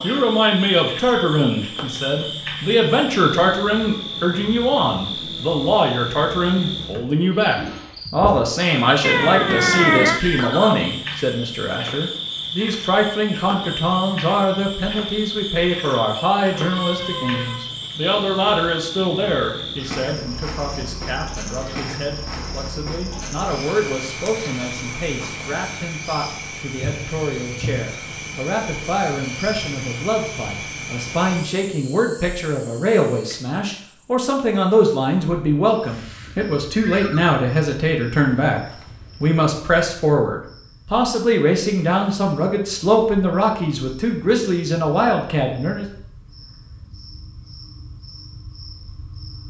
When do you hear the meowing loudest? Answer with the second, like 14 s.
10 s.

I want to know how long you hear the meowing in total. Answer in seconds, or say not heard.
3 s.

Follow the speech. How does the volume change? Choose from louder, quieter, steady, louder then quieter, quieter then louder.
quieter then louder.